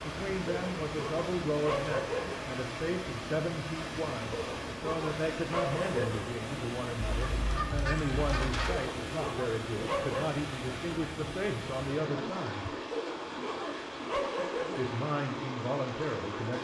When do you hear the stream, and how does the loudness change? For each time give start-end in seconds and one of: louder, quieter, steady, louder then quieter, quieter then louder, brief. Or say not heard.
0.0-16.5 steady.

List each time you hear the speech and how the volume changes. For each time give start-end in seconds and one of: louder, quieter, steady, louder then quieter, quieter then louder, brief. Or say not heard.
0.0-12.8 steady
14.8-16.5 brief.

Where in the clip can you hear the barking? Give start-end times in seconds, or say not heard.
0.5-2.5, 4.3-6.3, 8.7-10.3, 12.9-14.9.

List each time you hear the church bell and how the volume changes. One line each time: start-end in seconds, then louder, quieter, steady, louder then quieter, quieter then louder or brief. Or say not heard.
not heard.